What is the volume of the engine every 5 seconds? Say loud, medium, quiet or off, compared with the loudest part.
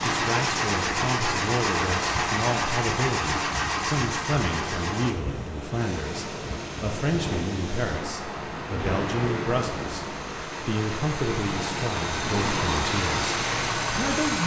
loud, quiet, loud.